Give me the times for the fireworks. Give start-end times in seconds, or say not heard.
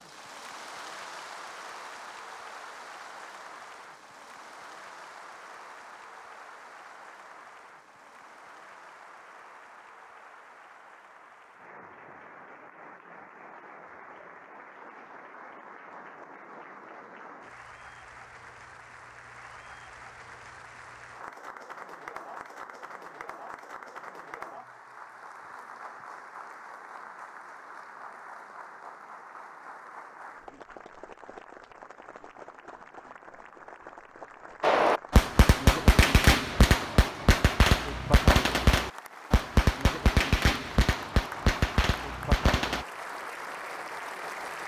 34.6-42.9.